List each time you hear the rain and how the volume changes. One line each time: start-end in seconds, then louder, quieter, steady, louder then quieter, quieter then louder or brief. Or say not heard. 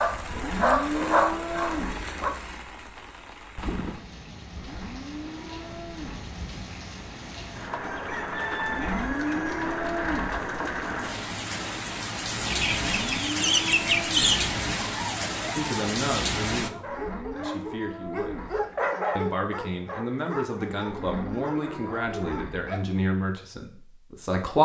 0.0-16.7 louder.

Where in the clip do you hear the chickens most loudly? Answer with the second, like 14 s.
14 s.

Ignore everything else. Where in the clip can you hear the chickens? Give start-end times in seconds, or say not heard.
7.8-9.8, 12.5-14.4.